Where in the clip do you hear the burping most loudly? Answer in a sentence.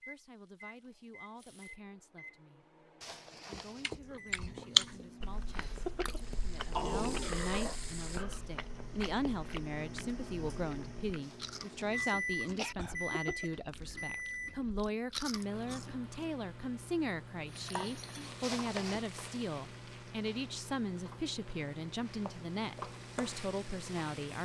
The loudest moment of the burping is at 7 seconds.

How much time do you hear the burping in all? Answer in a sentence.
You can hear the burping for 3 seconds altogether.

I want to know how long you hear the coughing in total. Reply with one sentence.
You can hear the coughing for 3 seconds altogether.